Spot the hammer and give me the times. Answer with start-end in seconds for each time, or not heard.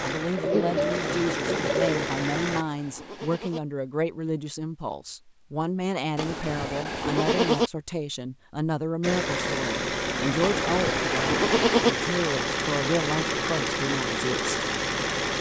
not heard.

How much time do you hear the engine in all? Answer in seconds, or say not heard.
9 s.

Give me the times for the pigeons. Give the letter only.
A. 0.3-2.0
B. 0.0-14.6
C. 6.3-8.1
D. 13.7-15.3
A.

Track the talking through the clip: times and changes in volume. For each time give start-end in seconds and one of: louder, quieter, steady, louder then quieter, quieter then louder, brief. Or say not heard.
0.0-14.6 steady.